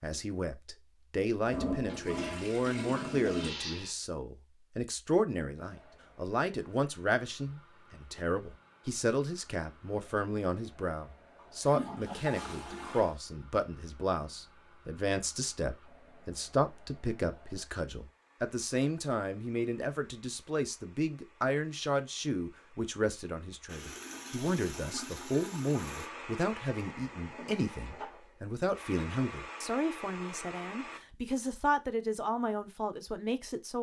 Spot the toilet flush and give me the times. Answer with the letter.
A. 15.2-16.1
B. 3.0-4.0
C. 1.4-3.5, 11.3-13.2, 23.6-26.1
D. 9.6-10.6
C.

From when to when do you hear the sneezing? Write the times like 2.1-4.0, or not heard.
3.0-4.0.